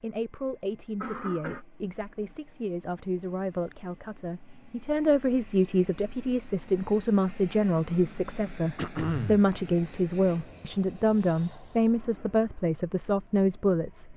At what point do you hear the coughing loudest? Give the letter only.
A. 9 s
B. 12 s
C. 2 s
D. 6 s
A.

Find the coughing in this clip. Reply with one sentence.
The coughing can be heard from 1.0 to 1.6 s and from 8.8 to 9.4 s.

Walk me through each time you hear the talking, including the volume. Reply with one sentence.
You can hear the talking from 0.0 to 14.1 s, getting louder.